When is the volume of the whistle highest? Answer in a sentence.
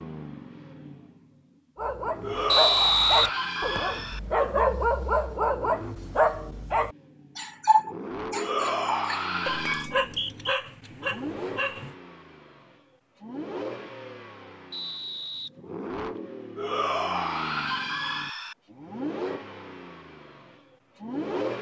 The loudest moment of the whistle is at 3 seconds.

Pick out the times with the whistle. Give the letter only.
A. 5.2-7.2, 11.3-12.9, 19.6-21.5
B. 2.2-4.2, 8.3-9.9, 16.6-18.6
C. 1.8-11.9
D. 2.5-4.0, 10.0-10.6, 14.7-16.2
D.